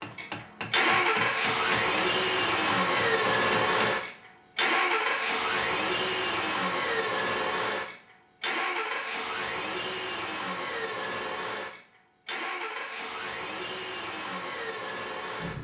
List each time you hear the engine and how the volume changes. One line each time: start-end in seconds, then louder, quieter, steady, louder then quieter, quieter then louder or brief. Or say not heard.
0.0-15.6 quieter.